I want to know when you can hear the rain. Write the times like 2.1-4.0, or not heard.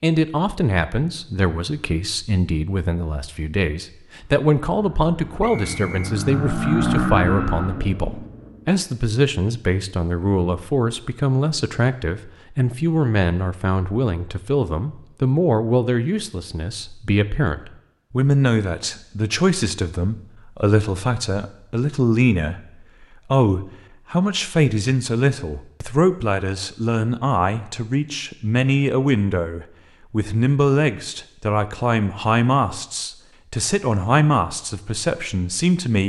not heard.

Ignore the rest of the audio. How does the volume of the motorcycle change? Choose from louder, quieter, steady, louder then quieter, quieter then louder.
louder then quieter.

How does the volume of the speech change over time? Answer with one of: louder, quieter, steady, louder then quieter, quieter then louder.
steady.